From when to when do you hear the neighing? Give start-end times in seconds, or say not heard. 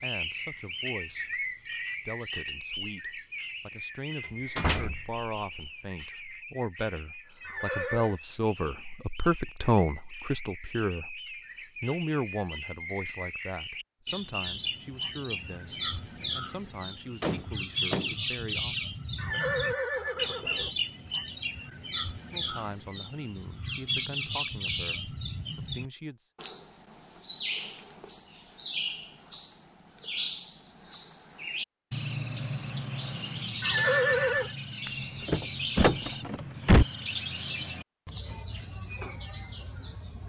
7.4-8.2, 19.1-20.7, 33.6-34.5.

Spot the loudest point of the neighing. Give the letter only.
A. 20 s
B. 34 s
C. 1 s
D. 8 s
B.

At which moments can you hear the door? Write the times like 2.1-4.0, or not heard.
4.5-5.2, 17.2-18.1, 34.9-36.9.